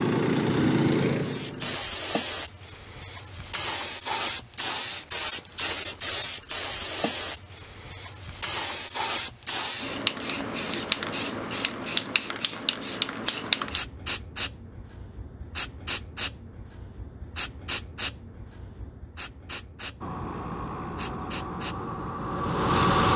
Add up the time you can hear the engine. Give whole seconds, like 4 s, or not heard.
5 s.